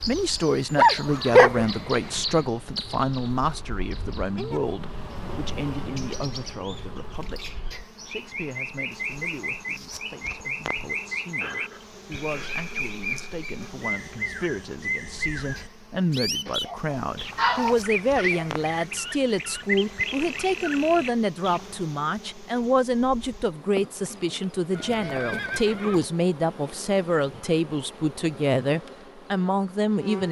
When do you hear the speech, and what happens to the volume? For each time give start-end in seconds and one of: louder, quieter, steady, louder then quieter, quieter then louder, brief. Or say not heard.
0.1-30.2 quieter then louder.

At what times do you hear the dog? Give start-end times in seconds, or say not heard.
0.8-1.6, 16.4-18.4.